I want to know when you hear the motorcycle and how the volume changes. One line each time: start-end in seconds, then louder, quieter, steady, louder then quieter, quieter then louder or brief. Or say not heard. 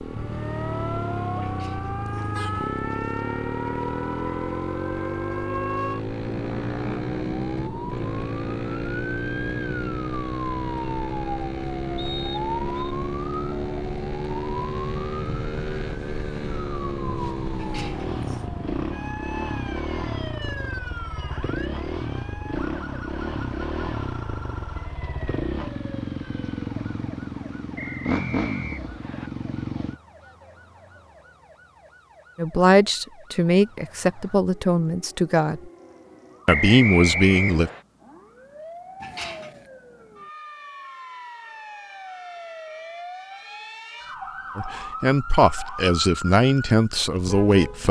0.0-30.0 steady.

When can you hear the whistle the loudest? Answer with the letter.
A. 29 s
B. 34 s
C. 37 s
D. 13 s
C.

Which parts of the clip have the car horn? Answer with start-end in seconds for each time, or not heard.
1.4-2.8, 17.6-18.4, 39.0-39.7.